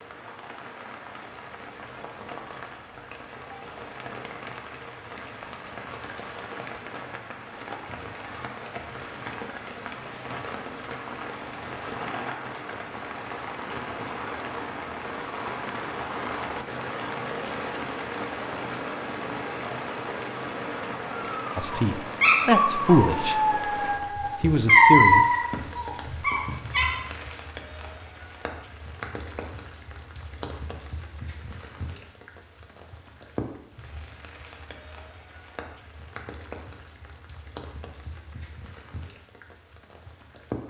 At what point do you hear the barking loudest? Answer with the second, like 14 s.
25 s.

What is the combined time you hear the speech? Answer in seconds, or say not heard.
3 s.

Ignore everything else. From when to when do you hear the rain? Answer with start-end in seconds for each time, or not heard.
0.0-40.6.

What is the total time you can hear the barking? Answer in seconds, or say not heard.
6 s.